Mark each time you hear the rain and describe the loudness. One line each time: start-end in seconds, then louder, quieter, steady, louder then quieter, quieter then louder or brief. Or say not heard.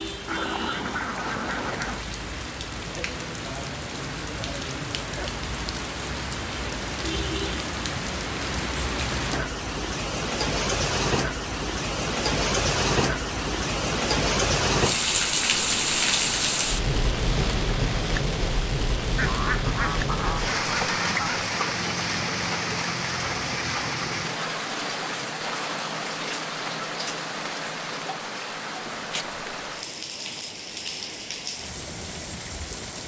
0.0-33.0 louder then quieter.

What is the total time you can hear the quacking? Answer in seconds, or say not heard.
4 s.